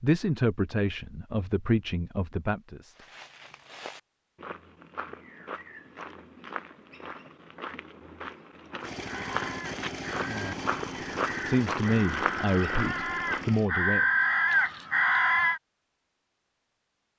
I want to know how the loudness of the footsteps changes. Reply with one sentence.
The volume of the footsteps goes up.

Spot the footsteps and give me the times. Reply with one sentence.
You can hear the footsteps from 3.0 to 13.6 s.